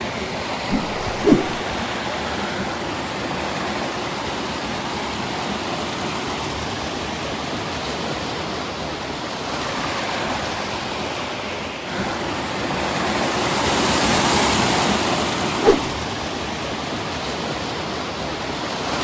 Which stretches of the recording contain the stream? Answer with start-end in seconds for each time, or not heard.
0.0-18.9.